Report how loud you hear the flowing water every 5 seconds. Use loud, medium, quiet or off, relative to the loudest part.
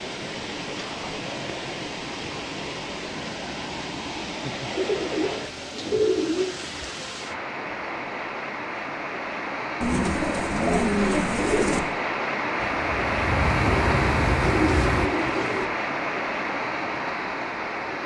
medium, medium, loud, loud.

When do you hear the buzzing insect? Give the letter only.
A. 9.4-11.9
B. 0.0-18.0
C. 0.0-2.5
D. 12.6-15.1
D.